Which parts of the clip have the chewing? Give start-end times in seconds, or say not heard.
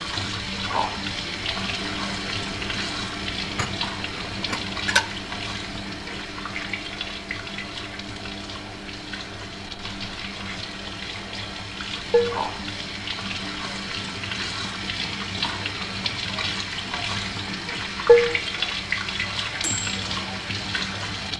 not heard.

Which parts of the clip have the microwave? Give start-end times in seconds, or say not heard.
0.1-21.3.